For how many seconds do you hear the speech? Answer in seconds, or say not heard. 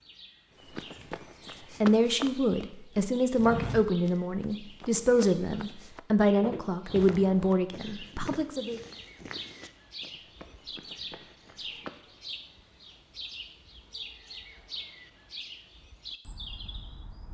7 s.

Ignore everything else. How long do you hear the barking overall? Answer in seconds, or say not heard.
not heard.